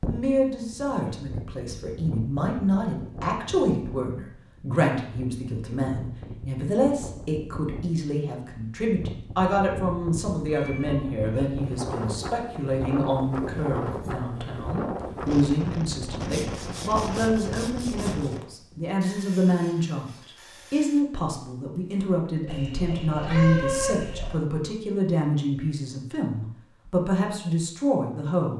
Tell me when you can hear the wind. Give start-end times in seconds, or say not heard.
0.0-18.4.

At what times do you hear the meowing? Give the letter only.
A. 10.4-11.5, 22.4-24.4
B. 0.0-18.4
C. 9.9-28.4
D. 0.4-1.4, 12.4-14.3
A.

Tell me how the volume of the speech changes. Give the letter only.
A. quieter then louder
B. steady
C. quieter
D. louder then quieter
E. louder
B.